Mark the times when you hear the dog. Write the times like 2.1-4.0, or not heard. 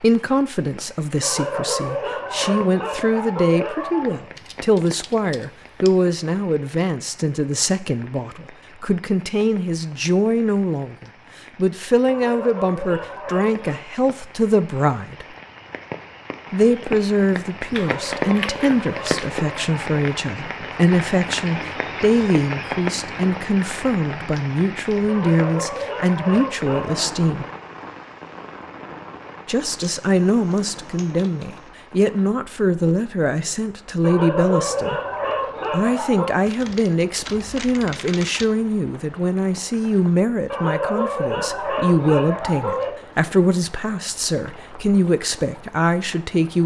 1.2-4.2, 12.1-13.8, 17.8-19.9, 25.1-27.1, 34.0-36.4, 40.5-42.9.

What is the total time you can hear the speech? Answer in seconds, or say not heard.
43 s.